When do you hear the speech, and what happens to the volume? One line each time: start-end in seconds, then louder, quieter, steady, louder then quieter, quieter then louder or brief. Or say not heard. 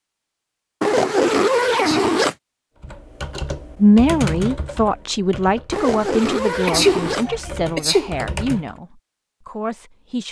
3.8-10.2 quieter.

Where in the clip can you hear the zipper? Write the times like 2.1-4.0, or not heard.
0.8-2.4, 5.7-7.2.